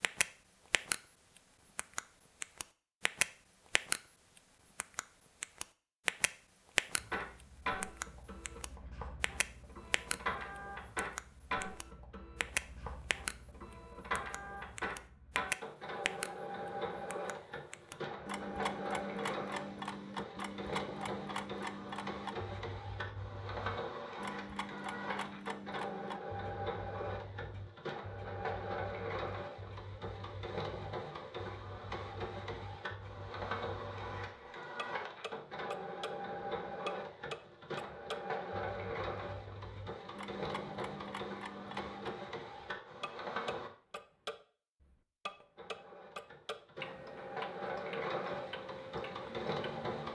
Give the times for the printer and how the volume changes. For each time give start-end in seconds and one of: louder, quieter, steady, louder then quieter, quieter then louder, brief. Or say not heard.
7.0-43.7 steady
45.5-50.0 louder.